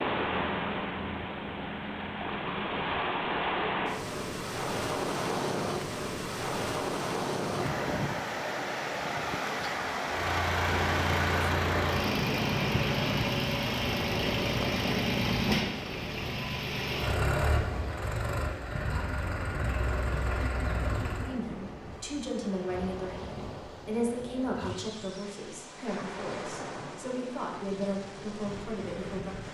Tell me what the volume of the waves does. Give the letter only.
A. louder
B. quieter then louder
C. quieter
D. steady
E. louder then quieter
C.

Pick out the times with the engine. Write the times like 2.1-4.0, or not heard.
10.1-21.4.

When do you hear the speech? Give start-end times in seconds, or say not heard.
21.2-29.4.